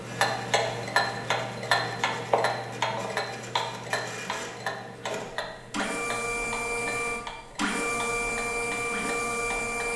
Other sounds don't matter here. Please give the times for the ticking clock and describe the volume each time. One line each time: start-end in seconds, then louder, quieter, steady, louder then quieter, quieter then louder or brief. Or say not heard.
0.0-9.9 quieter.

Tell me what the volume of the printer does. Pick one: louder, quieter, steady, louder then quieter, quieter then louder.
louder.